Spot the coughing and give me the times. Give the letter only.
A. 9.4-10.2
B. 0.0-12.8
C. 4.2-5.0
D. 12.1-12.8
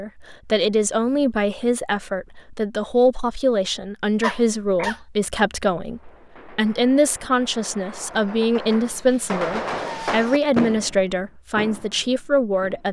C.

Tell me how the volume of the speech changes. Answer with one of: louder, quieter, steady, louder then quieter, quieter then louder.
steady.